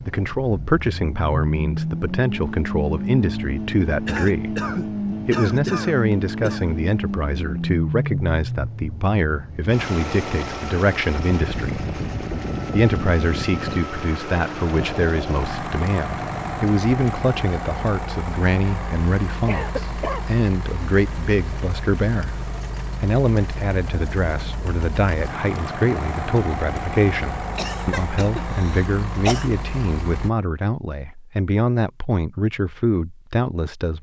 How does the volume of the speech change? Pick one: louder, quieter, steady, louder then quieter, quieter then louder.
steady.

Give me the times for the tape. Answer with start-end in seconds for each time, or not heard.
not heard.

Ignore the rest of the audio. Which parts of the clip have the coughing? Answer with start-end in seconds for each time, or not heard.
4.0-6.8, 19.4-20.2, 27.6-29.5.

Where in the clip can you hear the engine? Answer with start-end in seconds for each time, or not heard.
0.0-30.3.